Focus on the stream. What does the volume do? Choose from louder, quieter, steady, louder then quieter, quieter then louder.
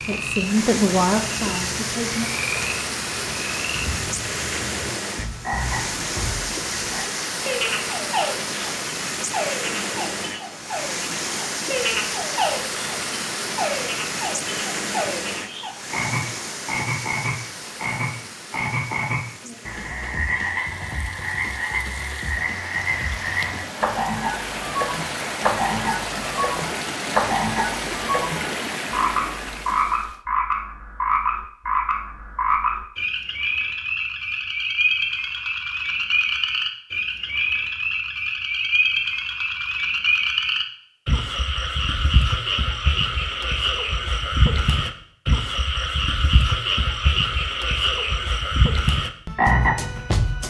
quieter then louder.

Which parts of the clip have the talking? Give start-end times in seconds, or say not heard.
0.0-2.3.